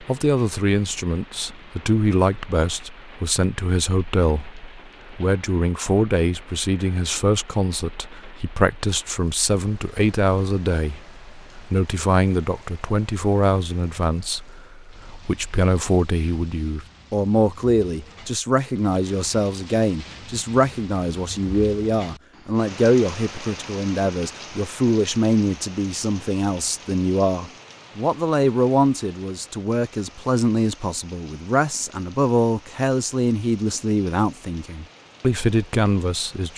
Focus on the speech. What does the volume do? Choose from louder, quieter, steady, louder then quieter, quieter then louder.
steady.